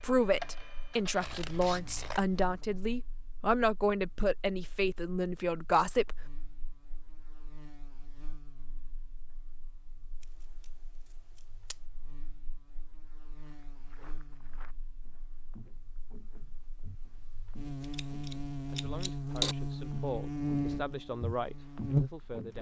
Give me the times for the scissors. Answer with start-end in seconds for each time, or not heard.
1.2-2.2, 10.2-10.7, 11.3-11.8, 17.8-19.6.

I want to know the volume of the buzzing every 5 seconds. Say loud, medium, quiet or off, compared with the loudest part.
quiet, quiet, quiet, medium, loud.